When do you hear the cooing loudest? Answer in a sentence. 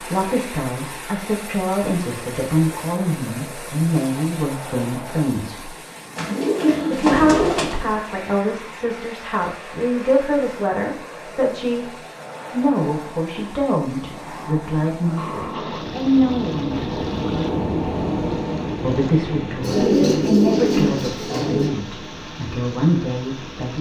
The loudest moment of the cooing is at 20 seconds.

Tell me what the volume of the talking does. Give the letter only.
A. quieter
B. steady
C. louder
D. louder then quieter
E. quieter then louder
B.